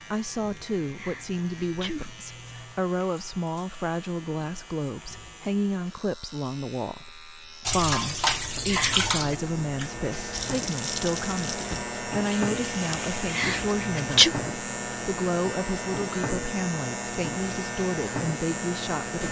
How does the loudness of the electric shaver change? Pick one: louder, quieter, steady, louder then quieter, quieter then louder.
louder.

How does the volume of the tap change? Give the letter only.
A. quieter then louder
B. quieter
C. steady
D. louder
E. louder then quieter
B.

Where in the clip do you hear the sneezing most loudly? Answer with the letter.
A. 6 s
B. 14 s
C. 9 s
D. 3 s
B.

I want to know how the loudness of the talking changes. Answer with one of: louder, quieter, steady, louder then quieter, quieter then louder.
steady.